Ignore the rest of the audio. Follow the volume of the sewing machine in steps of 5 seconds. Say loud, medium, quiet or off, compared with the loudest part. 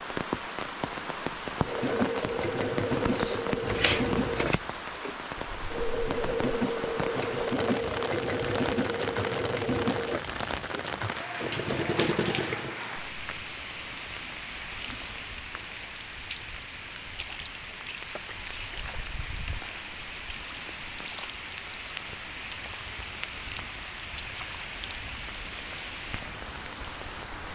loud, loud, loud, off, off, off.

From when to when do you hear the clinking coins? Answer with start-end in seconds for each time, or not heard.
3.6-4.6.